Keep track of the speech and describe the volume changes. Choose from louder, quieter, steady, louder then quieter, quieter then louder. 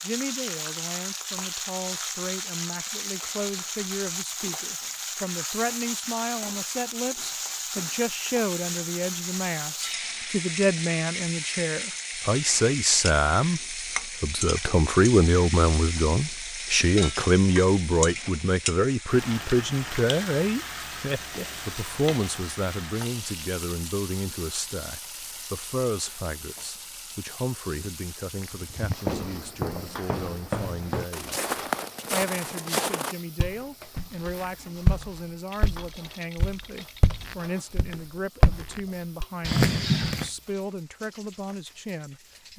louder then quieter.